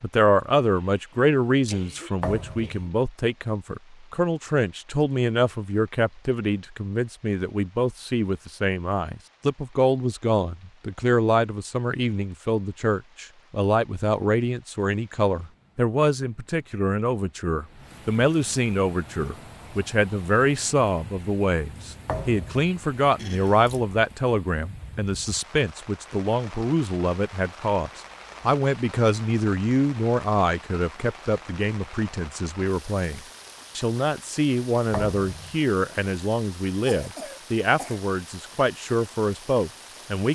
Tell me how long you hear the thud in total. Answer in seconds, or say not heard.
2 s.